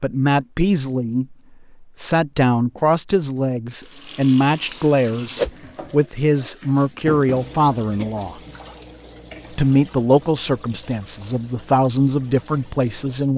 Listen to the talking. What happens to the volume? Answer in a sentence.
The volume of the talking stays about the same.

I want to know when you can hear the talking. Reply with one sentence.
The talking can be heard from 0.0 to 8.4 s and from 9.5 to 13.3 s.